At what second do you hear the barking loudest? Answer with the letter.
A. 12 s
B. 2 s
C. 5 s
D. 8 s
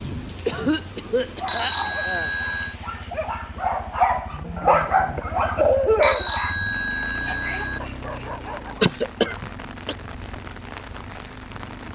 C.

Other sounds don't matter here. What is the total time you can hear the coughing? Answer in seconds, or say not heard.
5 s.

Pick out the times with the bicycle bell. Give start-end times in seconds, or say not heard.
1.4-2.8, 6.0-7.8.